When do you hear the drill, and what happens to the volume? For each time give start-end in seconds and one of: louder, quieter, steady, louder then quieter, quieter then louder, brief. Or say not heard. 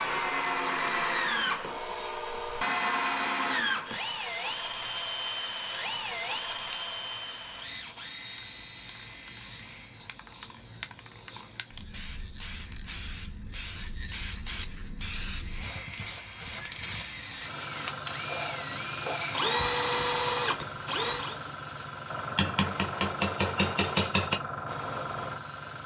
0.0-10.1 quieter
15.3-21.4 louder.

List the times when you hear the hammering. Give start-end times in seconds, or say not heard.
22.4-24.4.